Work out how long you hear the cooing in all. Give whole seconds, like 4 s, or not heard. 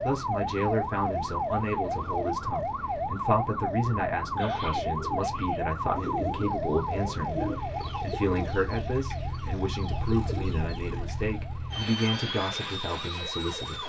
7 s.